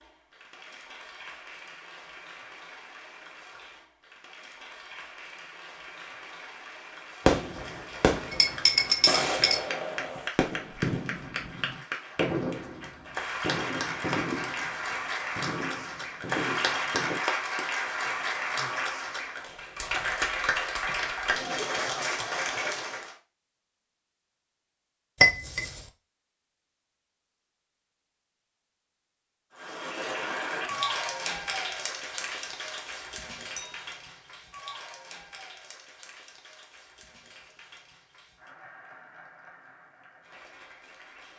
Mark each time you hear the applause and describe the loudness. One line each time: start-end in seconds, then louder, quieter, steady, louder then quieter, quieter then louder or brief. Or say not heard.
0.0-23.1 louder
29.6-41.3 quieter.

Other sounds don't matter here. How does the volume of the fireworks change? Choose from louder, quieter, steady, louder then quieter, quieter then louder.
quieter.